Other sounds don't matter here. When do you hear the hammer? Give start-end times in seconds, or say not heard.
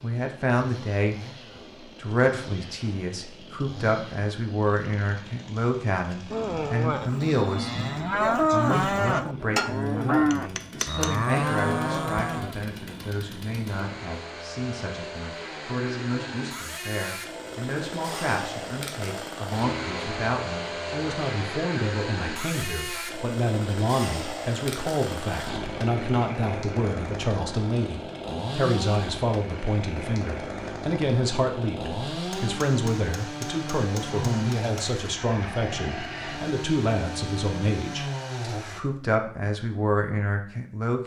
9.6-11.1, 32.1-35.0.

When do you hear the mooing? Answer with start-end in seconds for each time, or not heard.
6.3-12.6.